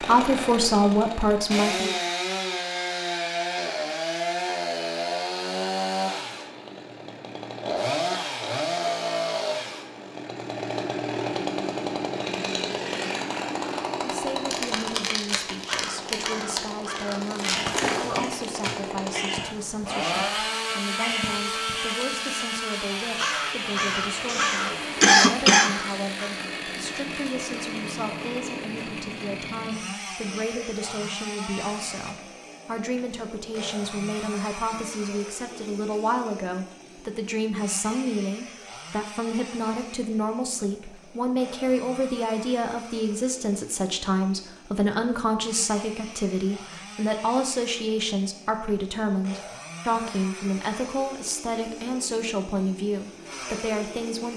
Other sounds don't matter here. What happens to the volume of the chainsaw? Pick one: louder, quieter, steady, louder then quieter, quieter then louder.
quieter.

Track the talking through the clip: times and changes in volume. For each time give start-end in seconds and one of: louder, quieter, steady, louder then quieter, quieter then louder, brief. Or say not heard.
0.0-1.9 brief
14.0-54.3 louder.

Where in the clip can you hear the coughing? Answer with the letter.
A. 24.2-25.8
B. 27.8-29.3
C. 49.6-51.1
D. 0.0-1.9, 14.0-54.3
A.